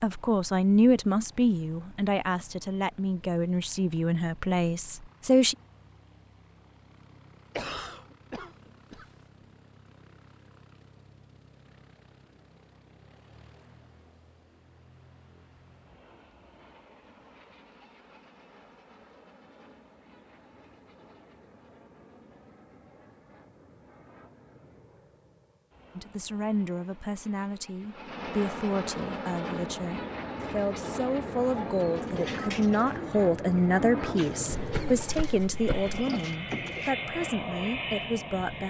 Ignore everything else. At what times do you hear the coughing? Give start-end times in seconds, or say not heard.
7.5-9.1, 34.5-36.0.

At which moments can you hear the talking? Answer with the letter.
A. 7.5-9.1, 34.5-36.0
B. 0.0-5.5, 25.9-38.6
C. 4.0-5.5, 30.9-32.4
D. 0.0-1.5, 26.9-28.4
B.